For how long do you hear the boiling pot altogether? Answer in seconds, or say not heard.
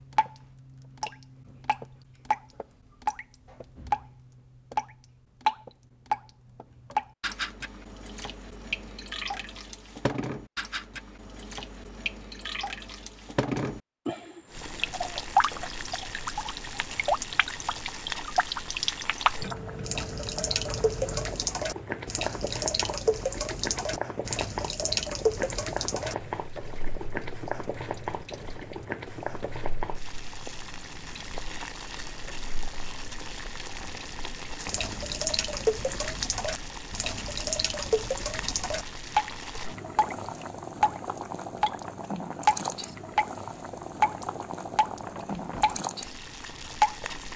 33 s.